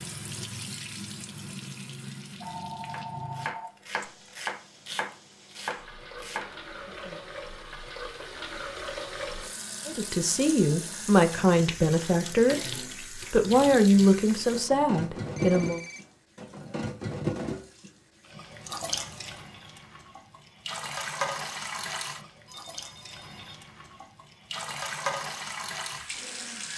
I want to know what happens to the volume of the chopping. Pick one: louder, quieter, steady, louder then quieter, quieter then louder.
louder then quieter.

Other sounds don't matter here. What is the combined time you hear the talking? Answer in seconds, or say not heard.
6 s.